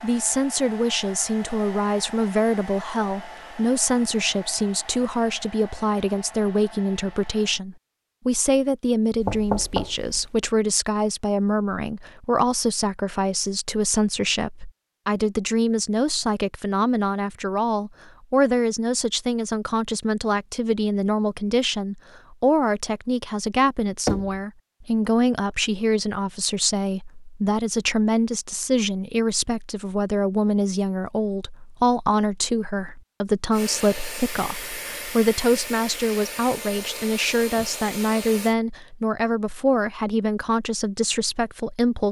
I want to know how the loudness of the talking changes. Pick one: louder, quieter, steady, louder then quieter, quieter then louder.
steady.